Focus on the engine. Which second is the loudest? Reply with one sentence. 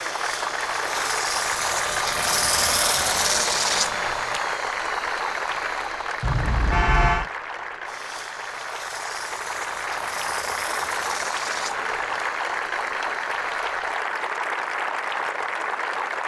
The volume of the engine peaks at 3 seconds.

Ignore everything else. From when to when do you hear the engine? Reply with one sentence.
The engine can be heard from 0.0 to 14.1 s.